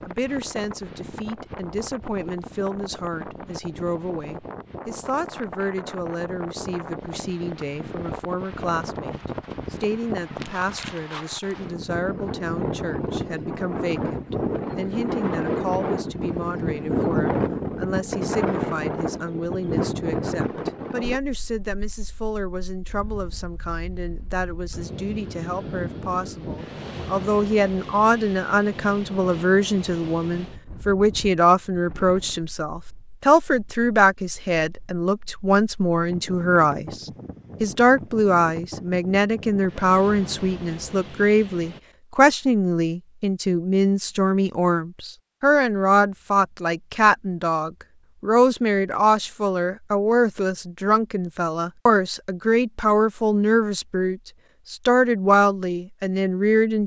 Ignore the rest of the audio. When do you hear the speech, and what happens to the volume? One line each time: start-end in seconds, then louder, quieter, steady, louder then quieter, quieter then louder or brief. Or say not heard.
0.1-56.8 louder.